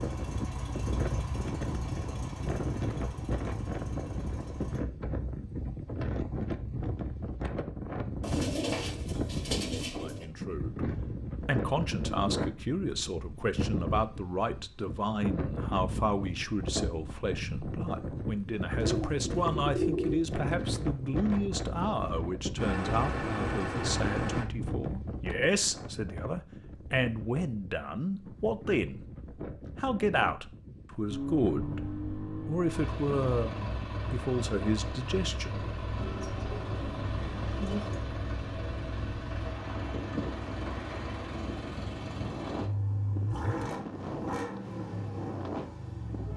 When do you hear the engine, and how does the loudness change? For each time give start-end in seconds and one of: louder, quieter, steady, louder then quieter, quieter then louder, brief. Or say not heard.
0.0-4.8 quieter
22.6-24.4 brief
31.1-46.3 steady.